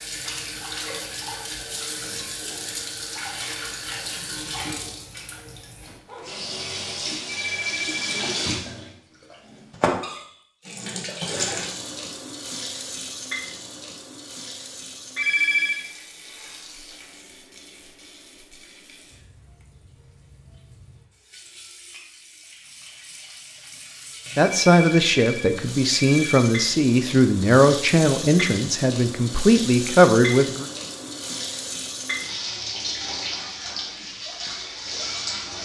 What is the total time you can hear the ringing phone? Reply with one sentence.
The ringing phone can be heard for 4 seconds in total.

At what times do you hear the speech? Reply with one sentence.
The speech can be heard from 24.4 to 30.6 s.